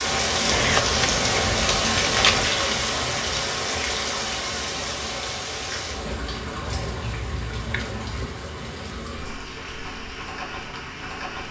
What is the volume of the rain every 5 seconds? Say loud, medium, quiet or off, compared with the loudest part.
loud, medium, medium.